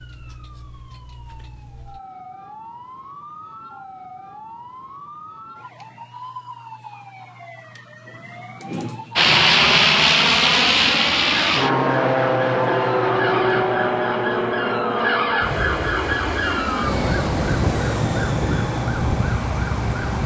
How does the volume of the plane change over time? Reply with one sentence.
The volume of the plane goes down.